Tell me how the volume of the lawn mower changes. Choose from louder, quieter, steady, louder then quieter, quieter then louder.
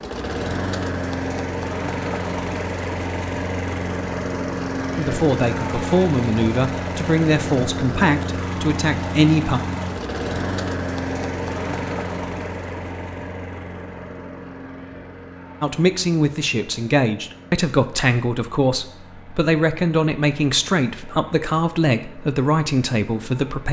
quieter.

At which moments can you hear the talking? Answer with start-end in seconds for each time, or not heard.
5.0-9.6, 15.6-23.6.